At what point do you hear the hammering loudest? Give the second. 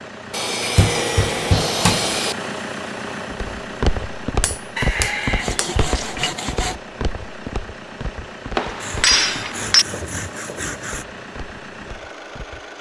9 s.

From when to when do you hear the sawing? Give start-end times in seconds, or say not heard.
0.3-2.4, 4.8-6.8, 8.8-11.1.